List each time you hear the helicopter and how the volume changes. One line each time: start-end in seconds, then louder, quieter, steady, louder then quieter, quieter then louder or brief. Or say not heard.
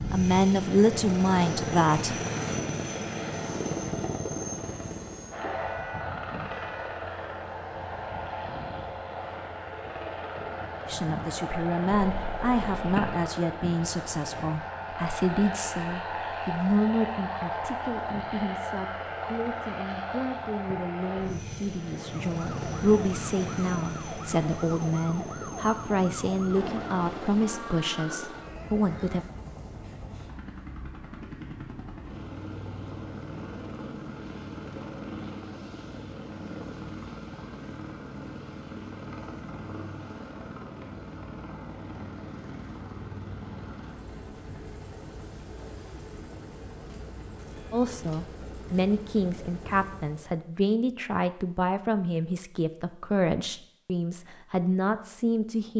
0.0-50.4 quieter.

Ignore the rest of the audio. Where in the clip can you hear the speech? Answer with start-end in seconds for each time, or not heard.
0.1-2.2, 10.8-29.2, 47.7-55.7.